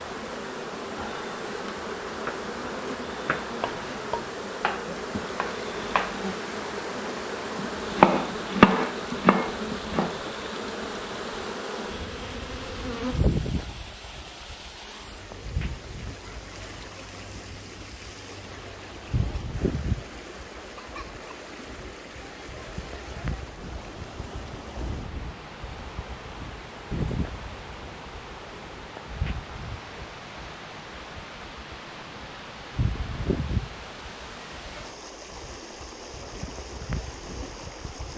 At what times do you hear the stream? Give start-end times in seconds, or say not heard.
0.0-38.1.